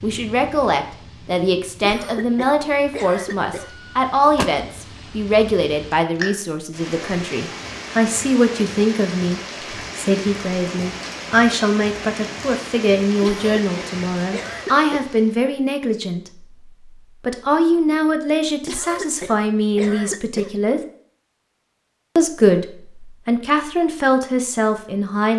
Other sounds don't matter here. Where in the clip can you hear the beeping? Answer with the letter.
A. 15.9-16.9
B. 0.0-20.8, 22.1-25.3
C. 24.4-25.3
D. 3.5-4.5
D.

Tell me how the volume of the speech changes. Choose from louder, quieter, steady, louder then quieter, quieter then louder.
steady.